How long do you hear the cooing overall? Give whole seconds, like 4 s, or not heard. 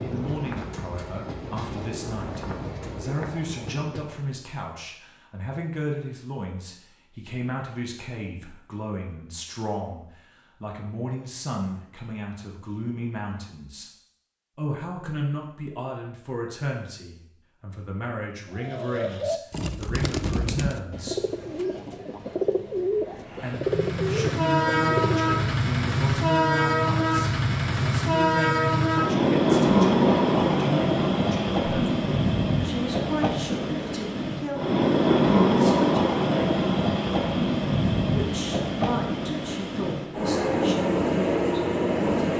7 s.